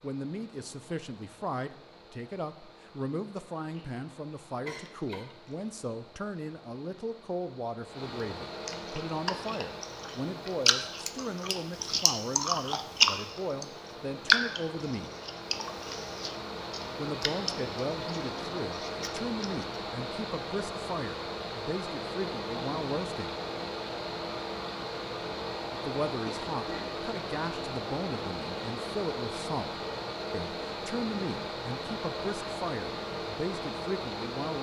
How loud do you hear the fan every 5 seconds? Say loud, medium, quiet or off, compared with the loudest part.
quiet, medium, medium, loud, loud, loud, loud.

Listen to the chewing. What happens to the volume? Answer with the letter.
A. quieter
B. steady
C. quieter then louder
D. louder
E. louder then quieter
E.